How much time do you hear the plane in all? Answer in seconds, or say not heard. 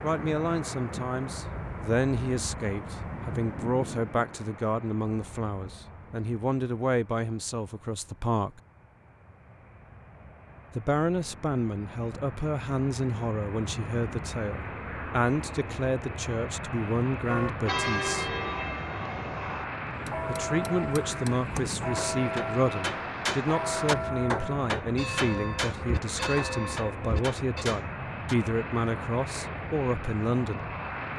31 s.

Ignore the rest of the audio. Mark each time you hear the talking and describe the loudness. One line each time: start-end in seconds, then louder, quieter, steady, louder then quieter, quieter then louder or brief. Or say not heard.
0.0-8.6 steady
10.8-18.4 steady
20.2-30.8 steady.